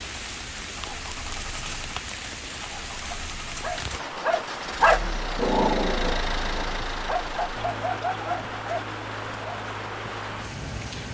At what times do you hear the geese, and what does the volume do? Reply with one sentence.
The geese can't be heard in this clip.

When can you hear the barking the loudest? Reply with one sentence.
The volume of the barking peaks at 5 seconds.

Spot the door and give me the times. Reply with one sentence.
You can't hear the door here.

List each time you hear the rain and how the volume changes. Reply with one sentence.
You can hear the rain from 0.0 to 11.0 s, at a steady volume.